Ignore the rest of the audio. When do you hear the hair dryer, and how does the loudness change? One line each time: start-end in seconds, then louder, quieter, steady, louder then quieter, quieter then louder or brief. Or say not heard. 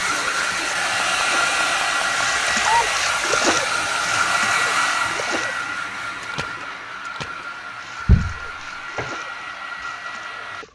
0.0-10.7 quieter.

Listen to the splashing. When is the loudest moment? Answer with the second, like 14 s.
3 s.